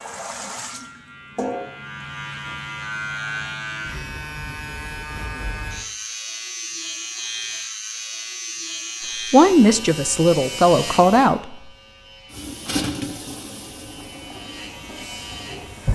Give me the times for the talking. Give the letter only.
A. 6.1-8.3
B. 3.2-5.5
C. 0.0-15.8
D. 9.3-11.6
D.